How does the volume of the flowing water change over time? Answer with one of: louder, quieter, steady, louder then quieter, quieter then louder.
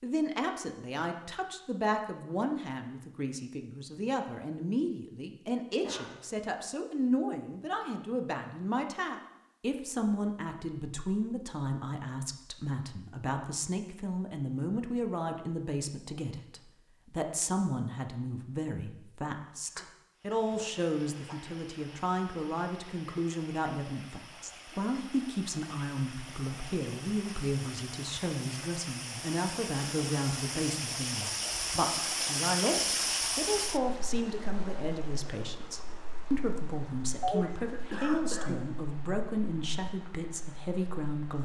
louder then quieter.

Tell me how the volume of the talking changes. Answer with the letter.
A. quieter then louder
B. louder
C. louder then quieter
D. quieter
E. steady
E.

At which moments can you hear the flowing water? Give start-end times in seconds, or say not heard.
20.1-41.3.